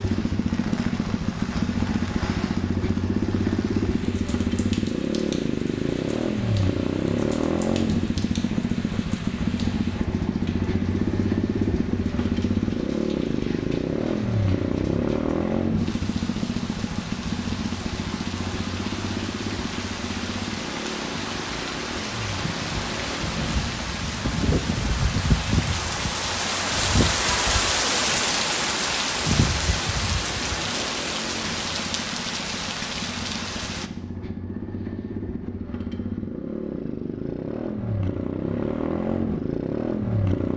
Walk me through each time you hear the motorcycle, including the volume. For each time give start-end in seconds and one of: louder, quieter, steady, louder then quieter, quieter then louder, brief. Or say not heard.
0.0-40.5 quieter then louder.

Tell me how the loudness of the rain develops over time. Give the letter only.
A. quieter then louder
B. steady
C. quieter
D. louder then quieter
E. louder
E.